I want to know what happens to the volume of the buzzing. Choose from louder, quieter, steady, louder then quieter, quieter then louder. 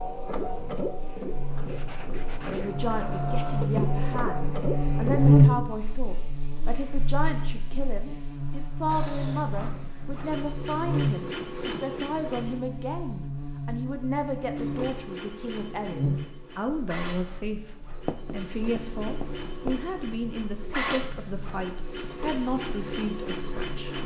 louder then quieter.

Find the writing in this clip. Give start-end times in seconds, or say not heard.
1.6-3.2, 18.1-19.8.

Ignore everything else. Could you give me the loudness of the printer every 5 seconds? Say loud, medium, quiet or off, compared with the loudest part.
loud, loud, loud, medium, loud.